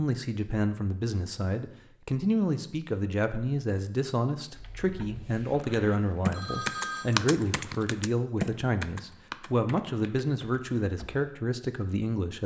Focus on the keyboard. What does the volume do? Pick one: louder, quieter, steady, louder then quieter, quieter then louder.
louder then quieter.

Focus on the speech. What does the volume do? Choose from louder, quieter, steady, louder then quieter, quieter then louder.
steady.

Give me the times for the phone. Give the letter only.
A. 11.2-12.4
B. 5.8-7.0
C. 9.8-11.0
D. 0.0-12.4
B.